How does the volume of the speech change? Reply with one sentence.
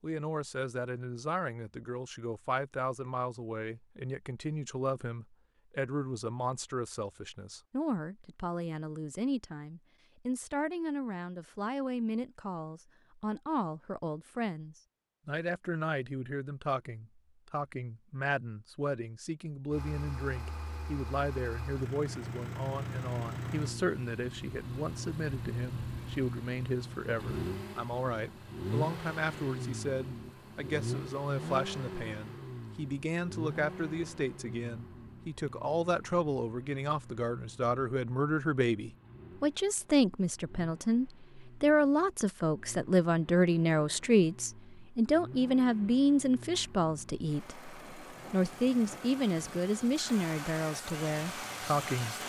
The loudness of the speech goes up.